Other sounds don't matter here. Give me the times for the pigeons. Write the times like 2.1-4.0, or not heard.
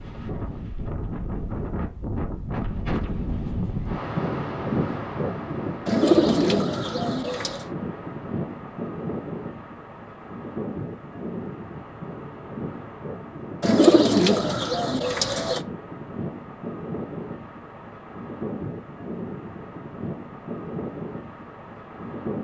5.8-7.7, 13.6-15.6.